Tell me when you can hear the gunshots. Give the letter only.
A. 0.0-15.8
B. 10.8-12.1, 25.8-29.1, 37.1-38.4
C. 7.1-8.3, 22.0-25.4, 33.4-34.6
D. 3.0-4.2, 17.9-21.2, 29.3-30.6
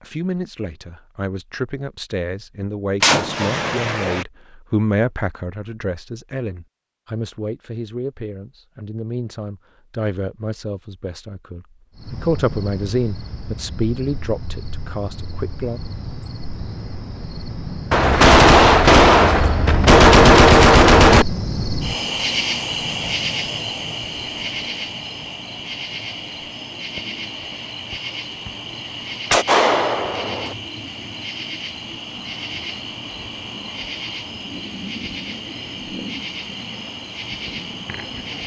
D.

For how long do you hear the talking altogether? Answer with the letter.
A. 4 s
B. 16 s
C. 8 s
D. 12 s
B.